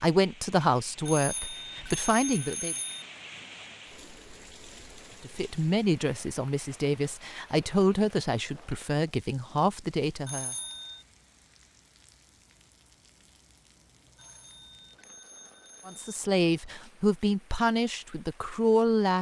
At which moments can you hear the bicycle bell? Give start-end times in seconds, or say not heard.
1.1-3.0, 10.2-11.1, 14.2-16.1.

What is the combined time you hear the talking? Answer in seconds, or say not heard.
11 s.